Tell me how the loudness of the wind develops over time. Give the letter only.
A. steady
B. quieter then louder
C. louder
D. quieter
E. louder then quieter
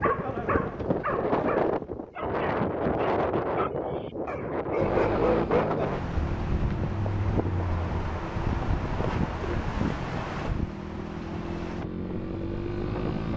D.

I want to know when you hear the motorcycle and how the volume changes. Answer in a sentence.
The motorcycle can be heard from 4.8 to 13.3 s, getting quieter then louder.